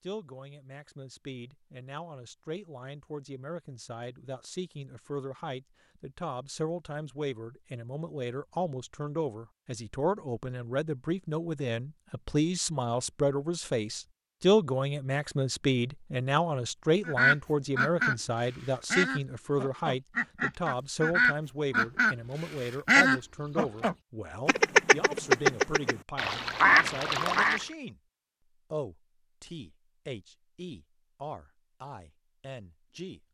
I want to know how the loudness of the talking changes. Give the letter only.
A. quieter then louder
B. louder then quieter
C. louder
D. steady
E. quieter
B.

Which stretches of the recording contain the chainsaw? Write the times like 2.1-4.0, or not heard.
not heard.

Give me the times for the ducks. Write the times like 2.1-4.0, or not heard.
17.1-27.6.